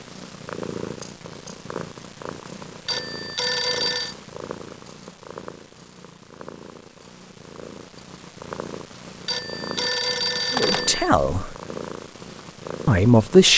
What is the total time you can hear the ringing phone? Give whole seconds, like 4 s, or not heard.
3 s.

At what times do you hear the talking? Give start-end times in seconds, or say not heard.
10.5-11.6, 12.8-13.5.